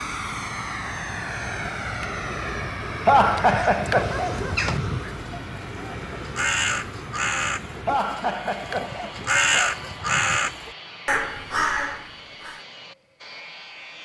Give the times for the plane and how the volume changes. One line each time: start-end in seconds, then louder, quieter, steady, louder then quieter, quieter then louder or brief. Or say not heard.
0.0-14.0 quieter.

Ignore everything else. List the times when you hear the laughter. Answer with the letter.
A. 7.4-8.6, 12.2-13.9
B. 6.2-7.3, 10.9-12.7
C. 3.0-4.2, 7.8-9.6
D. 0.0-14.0
C.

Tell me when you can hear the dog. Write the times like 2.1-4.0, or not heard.
3.2-5.2, 8.8-10.6.